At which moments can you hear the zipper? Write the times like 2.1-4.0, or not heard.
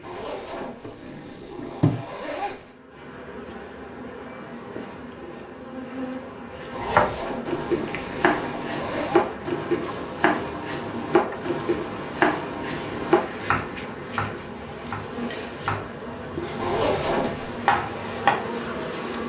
0.0-2.7, 6.7-9.2, 16.6-17.6.